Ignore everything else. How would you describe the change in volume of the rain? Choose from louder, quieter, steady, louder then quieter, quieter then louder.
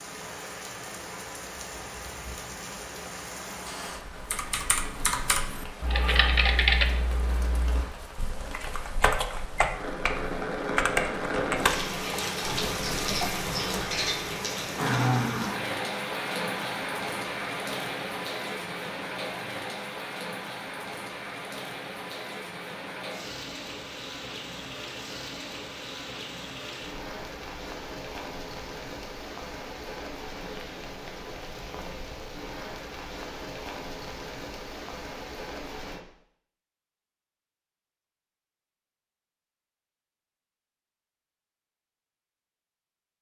louder then quieter.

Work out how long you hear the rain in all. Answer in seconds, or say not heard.
36 s.